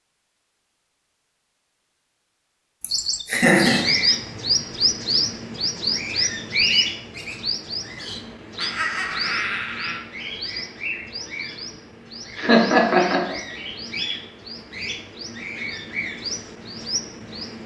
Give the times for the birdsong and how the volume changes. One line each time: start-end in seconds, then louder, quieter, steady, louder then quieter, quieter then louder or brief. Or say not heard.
2.9-17.6 quieter.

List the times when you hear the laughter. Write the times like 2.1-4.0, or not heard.
2.8-3.9, 8.6-10.0, 12.3-13.3.